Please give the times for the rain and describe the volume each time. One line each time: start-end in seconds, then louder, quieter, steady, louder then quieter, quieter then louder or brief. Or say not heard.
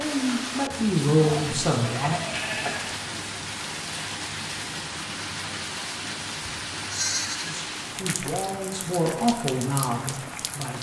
0.0-10.7 steady.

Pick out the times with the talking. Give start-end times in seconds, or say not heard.
0.0-2.1, 7.4-10.7.